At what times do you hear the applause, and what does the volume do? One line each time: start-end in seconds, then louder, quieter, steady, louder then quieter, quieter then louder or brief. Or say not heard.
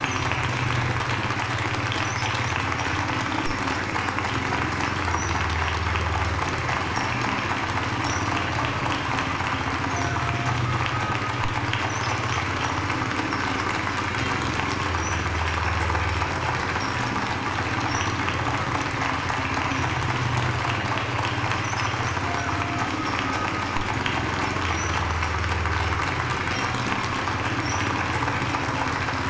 0.0-29.2 steady.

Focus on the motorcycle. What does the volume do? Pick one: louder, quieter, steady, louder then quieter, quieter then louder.
steady.